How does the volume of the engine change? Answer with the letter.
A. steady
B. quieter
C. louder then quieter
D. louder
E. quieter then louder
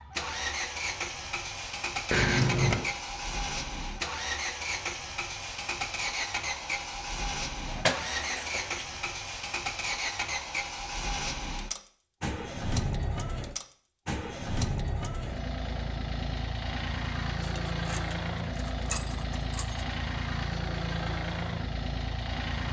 A.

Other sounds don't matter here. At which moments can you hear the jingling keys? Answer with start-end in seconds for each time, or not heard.
2.1-2.9, 7.7-8.9, 17.4-19.9.